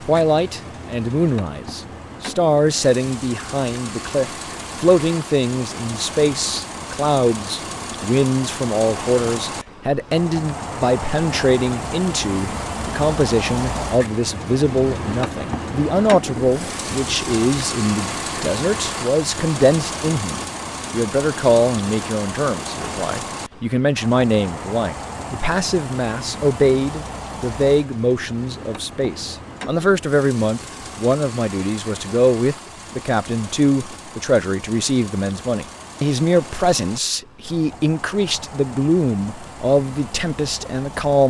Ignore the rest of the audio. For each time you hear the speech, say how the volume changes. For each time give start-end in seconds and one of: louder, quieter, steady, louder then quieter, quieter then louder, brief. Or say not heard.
0.1-41.2 steady.